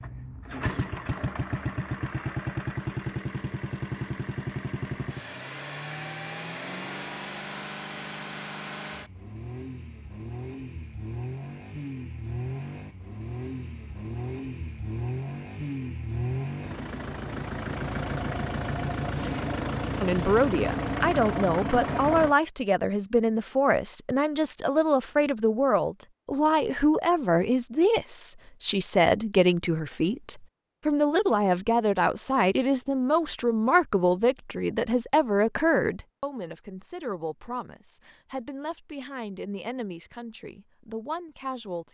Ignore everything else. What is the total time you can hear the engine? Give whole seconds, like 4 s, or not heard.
22 s.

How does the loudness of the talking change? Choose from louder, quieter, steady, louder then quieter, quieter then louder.
quieter.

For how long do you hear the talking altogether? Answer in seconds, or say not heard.
22 s.